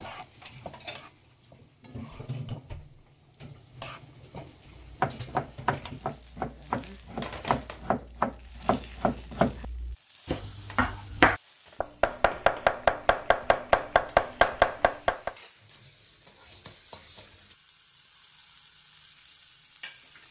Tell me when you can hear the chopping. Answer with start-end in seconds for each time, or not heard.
4.8-15.3.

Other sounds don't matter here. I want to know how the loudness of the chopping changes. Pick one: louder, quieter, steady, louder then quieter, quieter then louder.
louder.